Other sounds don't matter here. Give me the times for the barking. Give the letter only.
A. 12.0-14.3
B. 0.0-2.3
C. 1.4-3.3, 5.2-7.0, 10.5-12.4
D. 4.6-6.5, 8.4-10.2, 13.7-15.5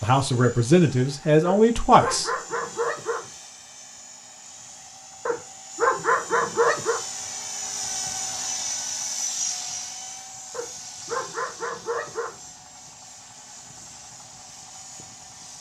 C.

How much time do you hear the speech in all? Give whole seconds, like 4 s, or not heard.
2 s.